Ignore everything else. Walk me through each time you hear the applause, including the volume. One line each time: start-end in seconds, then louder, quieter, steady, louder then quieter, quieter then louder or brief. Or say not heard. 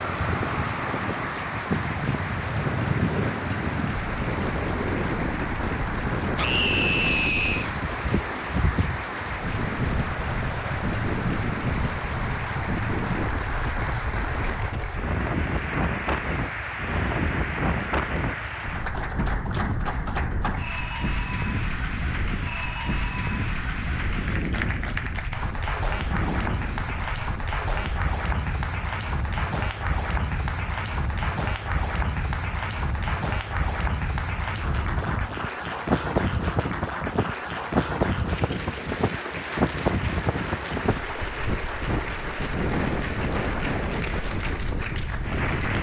0.0-45.7 steady.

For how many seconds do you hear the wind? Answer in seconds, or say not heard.
46 s.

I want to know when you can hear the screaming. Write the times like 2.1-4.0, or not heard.
6.3-7.7.